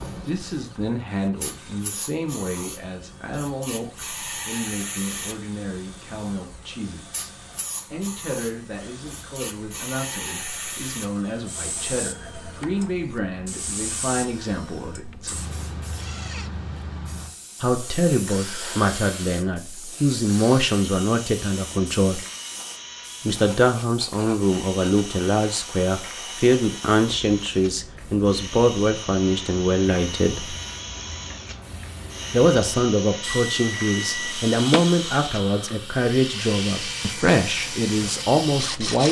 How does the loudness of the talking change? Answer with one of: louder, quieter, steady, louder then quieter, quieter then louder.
louder.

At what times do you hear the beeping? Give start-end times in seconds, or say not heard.
33.2-34.8.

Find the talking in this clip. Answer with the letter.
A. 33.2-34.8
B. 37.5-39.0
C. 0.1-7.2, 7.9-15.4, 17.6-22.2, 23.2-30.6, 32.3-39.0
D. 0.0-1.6
C.